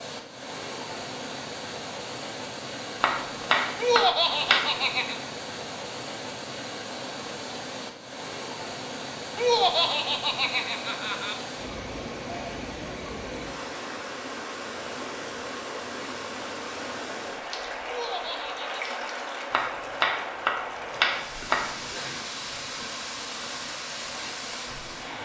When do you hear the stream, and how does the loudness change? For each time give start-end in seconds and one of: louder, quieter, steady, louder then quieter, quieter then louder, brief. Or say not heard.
0.0-25.2 steady.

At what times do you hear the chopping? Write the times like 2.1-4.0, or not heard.
3.0-4.7, 19.5-21.8.